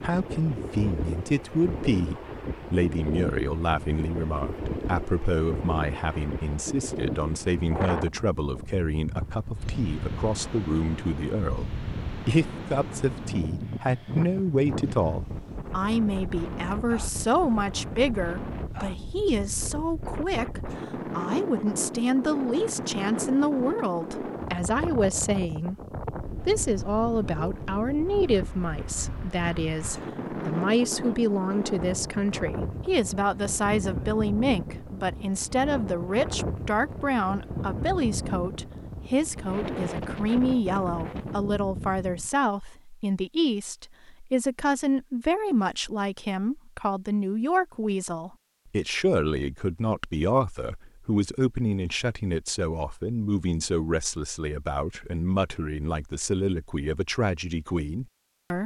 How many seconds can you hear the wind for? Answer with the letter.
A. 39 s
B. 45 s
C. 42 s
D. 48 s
C.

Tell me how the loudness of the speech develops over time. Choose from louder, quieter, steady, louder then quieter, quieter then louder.
steady.